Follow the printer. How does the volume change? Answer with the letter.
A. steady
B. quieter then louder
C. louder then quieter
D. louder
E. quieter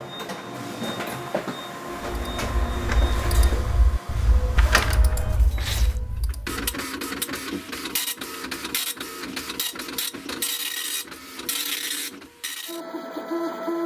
A.